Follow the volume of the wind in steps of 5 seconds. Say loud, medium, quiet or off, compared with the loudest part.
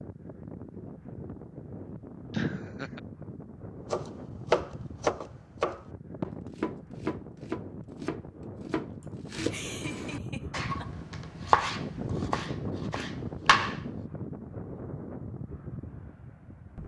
medium, medium, loud, medium.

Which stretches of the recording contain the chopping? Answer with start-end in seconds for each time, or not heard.
3.9-13.8.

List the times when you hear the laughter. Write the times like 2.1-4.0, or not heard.
2.3-3.0, 9.0-10.9.